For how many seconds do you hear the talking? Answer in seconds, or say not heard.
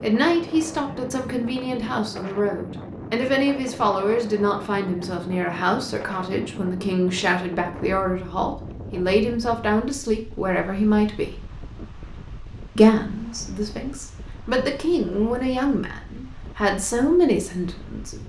17 s.